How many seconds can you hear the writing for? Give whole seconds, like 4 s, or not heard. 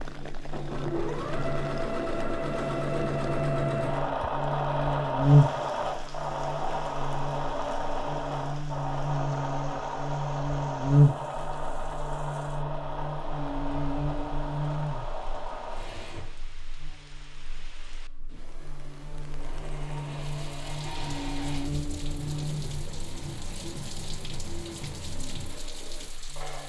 not heard.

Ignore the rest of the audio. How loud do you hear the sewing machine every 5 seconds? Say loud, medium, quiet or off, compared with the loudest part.
loud, loud, medium, medium, medium, quiet.